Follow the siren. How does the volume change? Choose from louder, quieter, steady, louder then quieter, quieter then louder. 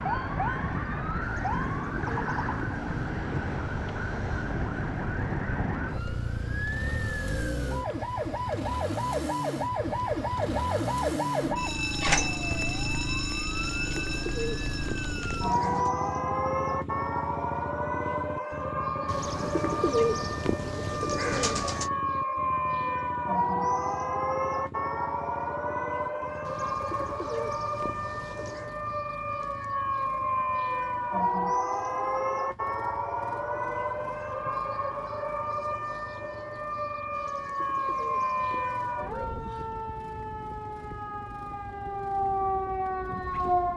steady.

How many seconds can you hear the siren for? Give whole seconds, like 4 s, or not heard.
44 s.